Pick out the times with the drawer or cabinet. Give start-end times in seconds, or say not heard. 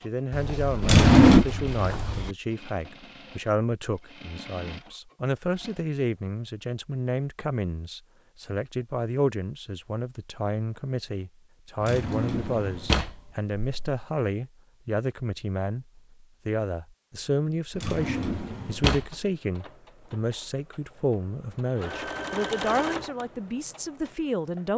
0.8-1.4, 11.8-13.9, 17.8-19.1.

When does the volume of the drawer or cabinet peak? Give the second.
1 s.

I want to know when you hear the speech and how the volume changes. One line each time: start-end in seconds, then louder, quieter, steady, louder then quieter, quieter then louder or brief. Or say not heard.
0.0-24.7 steady.